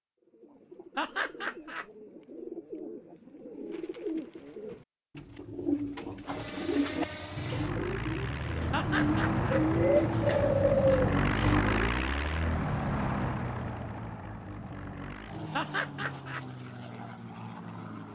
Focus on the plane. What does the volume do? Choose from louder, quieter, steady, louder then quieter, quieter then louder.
louder then quieter.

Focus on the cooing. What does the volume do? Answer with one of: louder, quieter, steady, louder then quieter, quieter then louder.
louder.